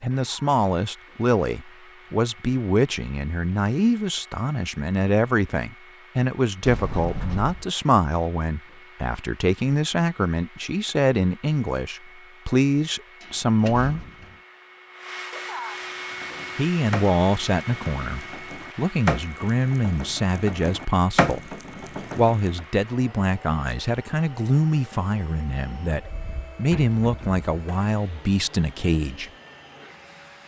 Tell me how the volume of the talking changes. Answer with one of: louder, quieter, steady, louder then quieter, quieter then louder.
steady.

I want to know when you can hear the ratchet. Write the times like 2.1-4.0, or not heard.
16.1-22.6.